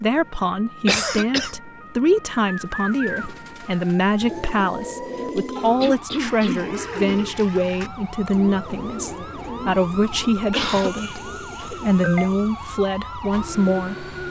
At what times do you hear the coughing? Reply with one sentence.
The coughing can be heard from 0.8 to 1.6 s, from 5.8 to 6.7 s and from 10.5 to 10.9 s.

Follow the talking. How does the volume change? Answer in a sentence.
The loudness of the talking stays about the same.